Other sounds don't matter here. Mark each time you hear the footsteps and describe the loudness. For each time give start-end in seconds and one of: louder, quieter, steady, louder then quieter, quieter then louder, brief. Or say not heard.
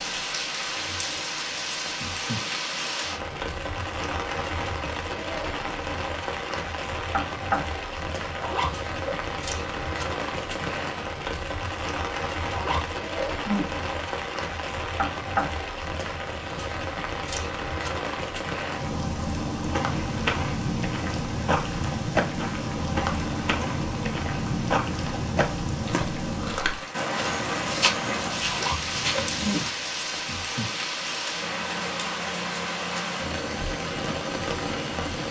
19.6-29.7 steady.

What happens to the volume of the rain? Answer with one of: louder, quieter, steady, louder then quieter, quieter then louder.
steady.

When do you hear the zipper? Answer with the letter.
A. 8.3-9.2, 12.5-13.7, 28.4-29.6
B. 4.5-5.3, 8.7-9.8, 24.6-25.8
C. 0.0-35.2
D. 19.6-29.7
A.